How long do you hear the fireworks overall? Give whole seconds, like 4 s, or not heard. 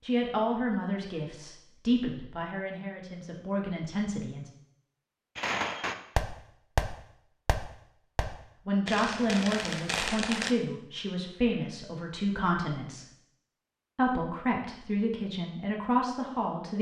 5 s.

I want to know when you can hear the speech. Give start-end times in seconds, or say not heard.
0.0-4.5, 8.7-13.1, 13.9-16.7.